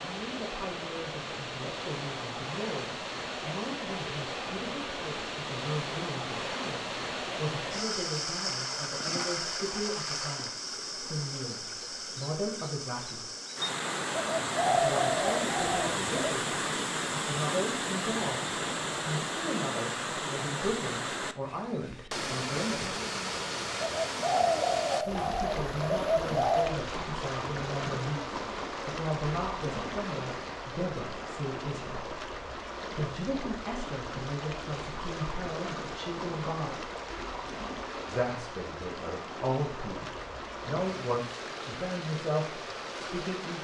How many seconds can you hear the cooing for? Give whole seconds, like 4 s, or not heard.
5 s.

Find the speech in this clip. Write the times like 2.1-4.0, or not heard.
0.0-13.3, 14.7-22.9, 25.0-36.9, 38.0-43.5.